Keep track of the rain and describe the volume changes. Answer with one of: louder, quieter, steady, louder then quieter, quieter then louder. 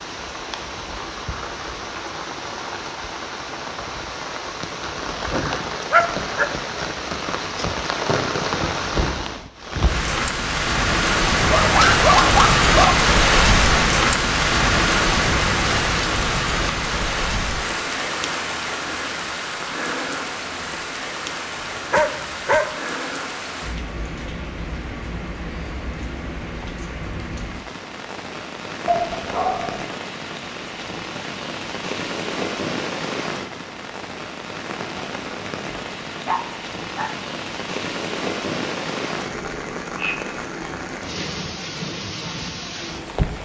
louder then quieter.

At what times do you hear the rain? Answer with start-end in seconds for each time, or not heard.
0.0-43.4.